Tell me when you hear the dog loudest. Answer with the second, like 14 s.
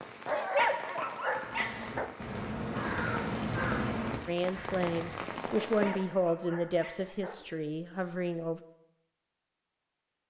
1 s.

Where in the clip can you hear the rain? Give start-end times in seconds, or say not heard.
0.0-6.1.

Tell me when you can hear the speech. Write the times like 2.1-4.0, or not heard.
4.2-8.6.